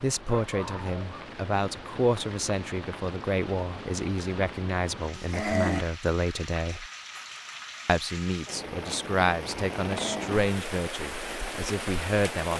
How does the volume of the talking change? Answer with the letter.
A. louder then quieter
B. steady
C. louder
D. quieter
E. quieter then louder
B.